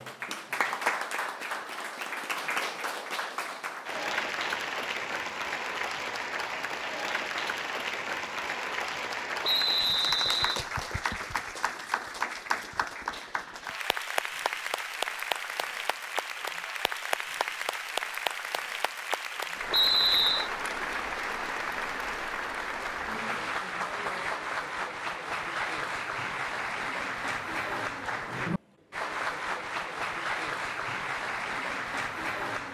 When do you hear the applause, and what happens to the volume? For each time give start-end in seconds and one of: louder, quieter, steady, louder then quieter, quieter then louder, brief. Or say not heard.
0.0-32.6 steady.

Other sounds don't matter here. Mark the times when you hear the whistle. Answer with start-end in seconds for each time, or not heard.
9.4-10.7, 19.7-20.5.